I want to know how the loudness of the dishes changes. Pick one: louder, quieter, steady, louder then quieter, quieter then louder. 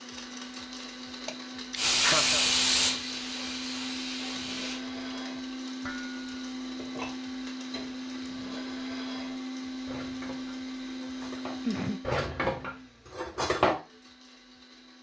louder.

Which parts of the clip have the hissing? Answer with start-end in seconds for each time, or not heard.
1.8-4.8.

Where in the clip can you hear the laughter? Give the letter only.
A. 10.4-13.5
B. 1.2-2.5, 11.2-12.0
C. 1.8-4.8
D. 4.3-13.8
B.